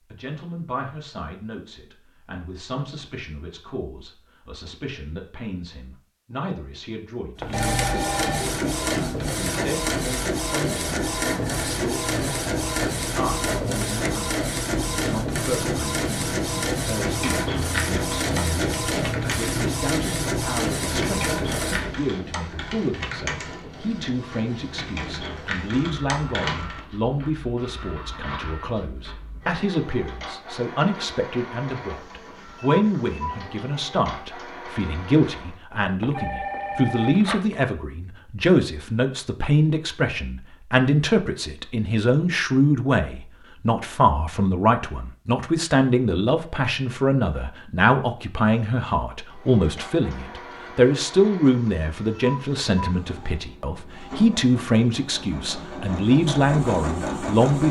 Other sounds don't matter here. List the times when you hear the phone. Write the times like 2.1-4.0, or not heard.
7.4-8.4, 36.0-37.6.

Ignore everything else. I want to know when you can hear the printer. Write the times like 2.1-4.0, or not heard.
7.3-35.6, 49.2-57.6.